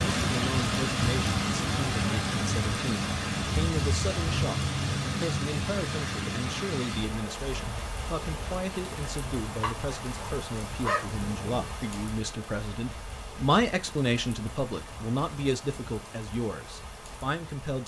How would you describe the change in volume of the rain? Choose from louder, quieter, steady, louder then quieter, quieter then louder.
quieter.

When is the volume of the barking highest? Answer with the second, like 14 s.
11 s.